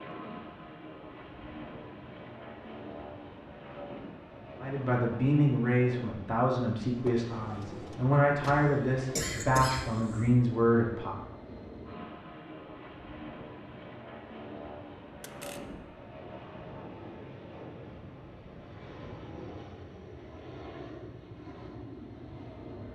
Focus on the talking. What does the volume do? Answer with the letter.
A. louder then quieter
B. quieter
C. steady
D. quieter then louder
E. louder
C.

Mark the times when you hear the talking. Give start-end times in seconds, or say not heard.
4.6-11.2.